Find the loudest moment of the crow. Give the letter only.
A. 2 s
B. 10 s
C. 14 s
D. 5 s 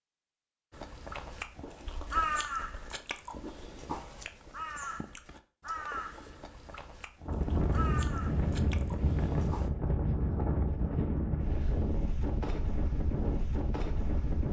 A.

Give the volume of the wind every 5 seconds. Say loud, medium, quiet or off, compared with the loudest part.
off, loud, loud.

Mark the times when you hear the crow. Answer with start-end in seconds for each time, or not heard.
0.7-9.7.